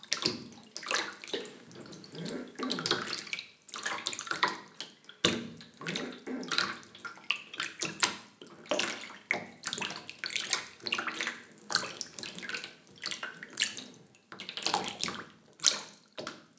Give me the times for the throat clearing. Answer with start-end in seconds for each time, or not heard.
2.1-3.0, 5.8-6.5, 13.2-14.2.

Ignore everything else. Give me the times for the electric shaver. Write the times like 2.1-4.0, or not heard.
not heard.